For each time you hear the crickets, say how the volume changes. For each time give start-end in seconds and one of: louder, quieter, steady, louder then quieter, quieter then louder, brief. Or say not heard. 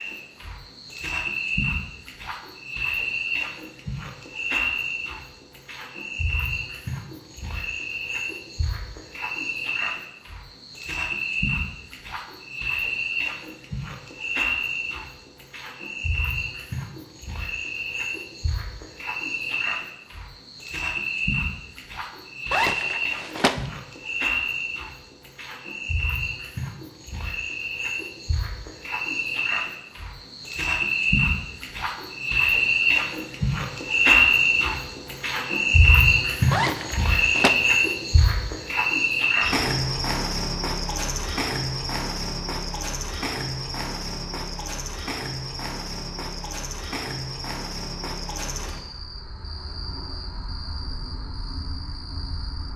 0.0-52.7 louder then quieter.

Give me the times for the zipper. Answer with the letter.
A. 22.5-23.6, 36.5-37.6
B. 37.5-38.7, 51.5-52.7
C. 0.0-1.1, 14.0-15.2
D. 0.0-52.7
A.